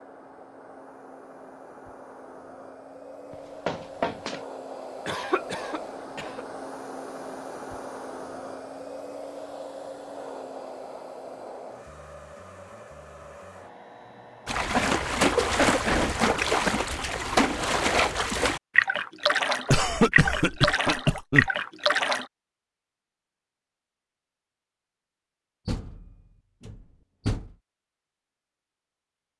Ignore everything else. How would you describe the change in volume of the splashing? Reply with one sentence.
The loudness of the splashing stays about the same.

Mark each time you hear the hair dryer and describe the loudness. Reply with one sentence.
You can hear the hair dryer from 0.0 to 14.6 s, getting louder then quieter.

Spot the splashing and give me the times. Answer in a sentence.
The splashing can be heard from 14.4 to 22.2 s.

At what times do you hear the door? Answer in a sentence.
The door can be heard from 3.3 to 4.4 s, from 15.8 to 16.3 s and from 25.6 to 27.6 s.